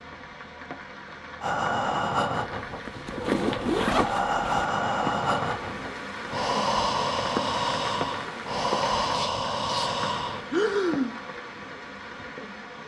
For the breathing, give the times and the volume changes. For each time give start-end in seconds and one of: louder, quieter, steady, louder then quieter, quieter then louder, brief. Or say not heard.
1.4-11.2 steady.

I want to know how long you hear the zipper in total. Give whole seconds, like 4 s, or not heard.
3 s.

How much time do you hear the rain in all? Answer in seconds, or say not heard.
13 s.